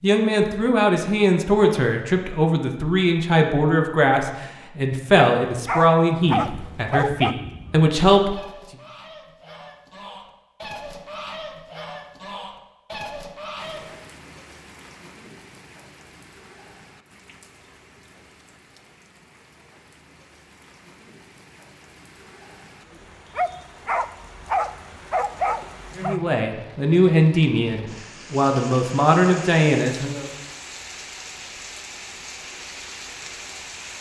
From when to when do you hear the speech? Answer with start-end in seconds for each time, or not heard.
0.0-8.4, 25.9-30.2.